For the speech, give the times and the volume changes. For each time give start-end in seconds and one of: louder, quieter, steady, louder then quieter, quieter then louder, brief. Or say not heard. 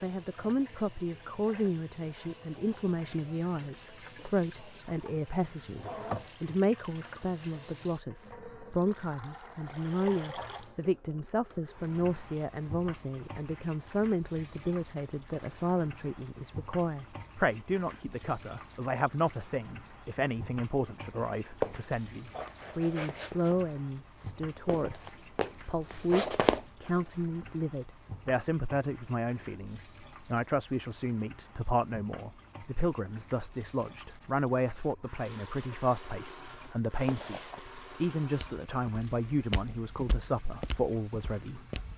0.0-41.9 steady.